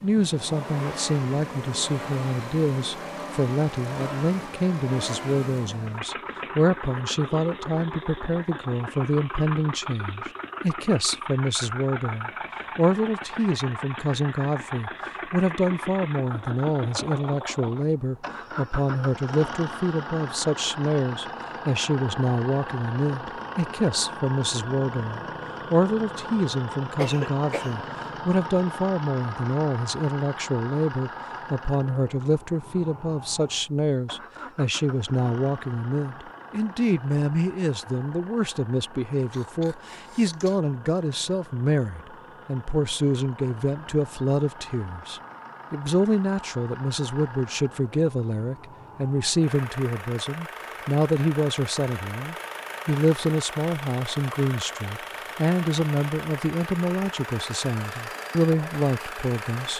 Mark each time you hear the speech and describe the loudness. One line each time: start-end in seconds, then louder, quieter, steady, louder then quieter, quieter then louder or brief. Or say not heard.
0.0-59.7 steady.